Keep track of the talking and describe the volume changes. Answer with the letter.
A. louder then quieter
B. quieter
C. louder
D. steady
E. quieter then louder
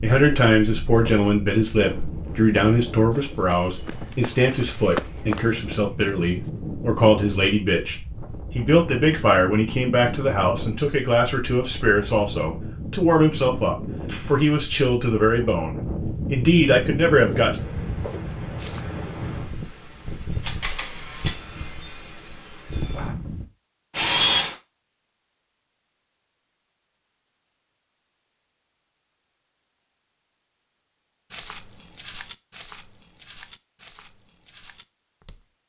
D.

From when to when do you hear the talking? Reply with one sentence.
You can hear the talking from 0.0 to 17.6 s.